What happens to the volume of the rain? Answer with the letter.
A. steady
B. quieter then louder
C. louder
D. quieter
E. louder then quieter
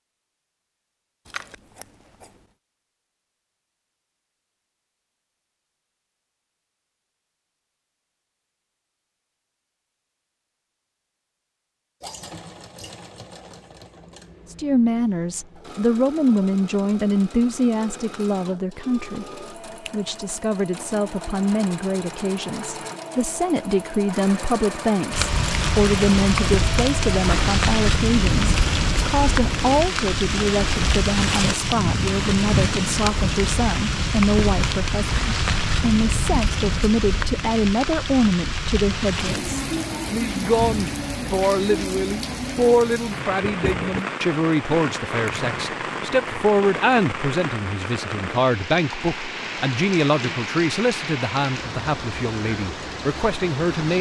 D.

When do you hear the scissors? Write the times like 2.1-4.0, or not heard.
1.2-2.3, 43.4-44.0.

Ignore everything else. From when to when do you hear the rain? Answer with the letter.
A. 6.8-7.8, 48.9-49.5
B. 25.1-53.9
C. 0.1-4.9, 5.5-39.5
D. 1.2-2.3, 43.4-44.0
B.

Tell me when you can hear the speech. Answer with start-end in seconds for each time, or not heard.
14.5-19.2, 19.9-53.9.